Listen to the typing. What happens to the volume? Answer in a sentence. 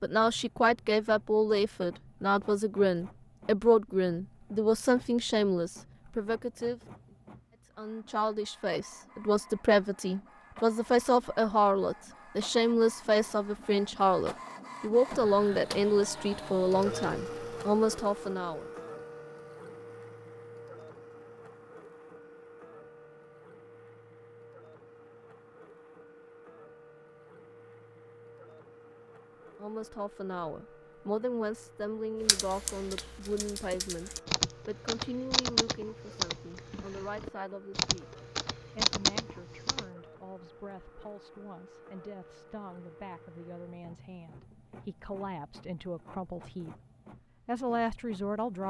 The volume of the typing goes up.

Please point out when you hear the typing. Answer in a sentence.
You can hear the typing from 32.2 to 39.9 s.